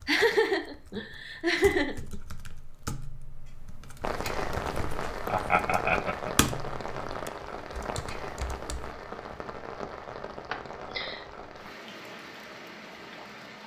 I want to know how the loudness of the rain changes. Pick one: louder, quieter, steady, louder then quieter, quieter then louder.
quieter.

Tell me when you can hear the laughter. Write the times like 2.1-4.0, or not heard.
0.1-2.1, 5.2-6.3, 10.5-11.2.